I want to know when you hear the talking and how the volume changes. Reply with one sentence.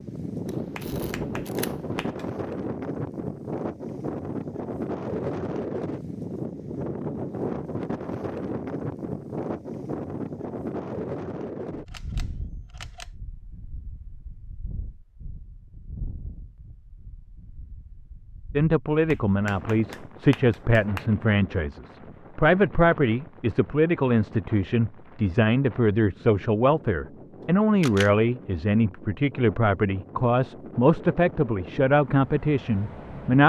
You can hear the talking from 18.6 to 33.4 s, at a steady volume.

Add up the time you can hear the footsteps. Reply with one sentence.
You can't hear the footsteps here.